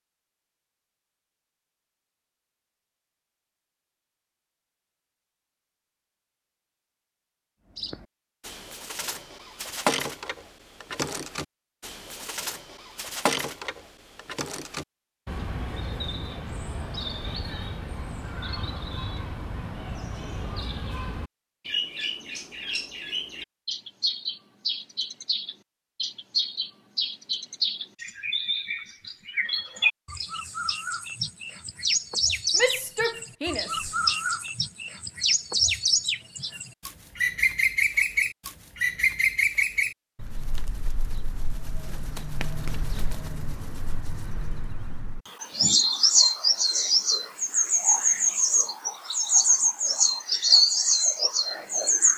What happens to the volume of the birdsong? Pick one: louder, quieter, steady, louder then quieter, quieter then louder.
louder.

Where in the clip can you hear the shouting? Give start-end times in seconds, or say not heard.
32.5-33.9.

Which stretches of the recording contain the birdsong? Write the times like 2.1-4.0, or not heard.
7.8-52.1.